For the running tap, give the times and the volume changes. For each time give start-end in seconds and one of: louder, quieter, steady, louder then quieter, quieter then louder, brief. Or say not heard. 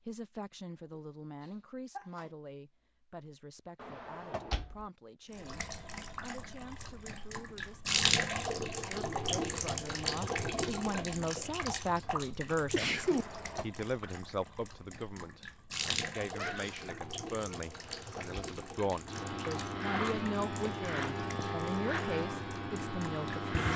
5.3-23.7 quieter.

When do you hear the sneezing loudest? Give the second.
13 s.